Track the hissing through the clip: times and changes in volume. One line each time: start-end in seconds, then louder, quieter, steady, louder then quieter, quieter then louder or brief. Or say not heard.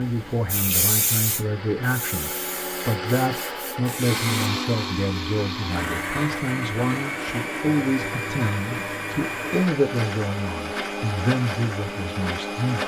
0.0-4.6 quieter then louder.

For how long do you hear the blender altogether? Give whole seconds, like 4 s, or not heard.
13 s.